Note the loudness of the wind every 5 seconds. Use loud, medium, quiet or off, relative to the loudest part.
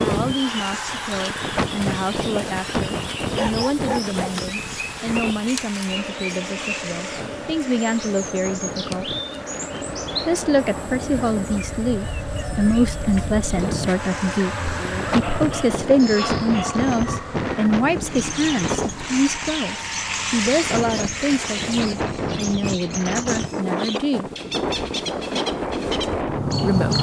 loud, medium, medium, loud, loud, loud.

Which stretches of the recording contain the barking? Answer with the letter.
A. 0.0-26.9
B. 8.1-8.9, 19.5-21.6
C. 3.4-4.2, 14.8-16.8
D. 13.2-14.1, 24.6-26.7
C.